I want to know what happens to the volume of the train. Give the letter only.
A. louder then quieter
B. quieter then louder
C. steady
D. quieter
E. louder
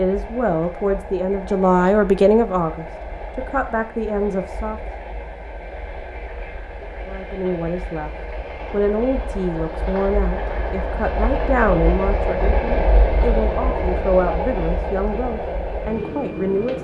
E.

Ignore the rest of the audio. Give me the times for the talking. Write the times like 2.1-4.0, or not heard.
0.0-4.8, 7.0-8.1, 8.7-16.8.